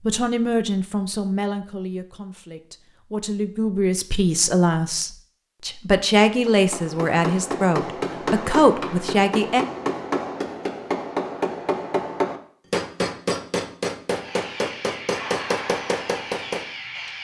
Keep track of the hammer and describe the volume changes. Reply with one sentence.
The volume of the hammer stays about the same.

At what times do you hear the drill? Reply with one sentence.
The drill can be heard from 14.1 to 17.1 s.